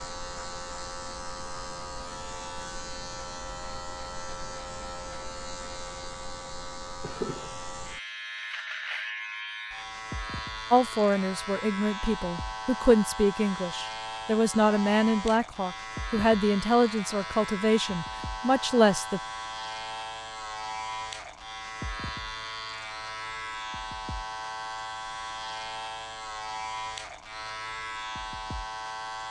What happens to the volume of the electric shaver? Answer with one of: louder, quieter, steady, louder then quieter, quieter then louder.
steady.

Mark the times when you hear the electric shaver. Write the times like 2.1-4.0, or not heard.
0.0-29.2.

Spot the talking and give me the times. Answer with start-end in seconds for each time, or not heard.
10.7-19.2.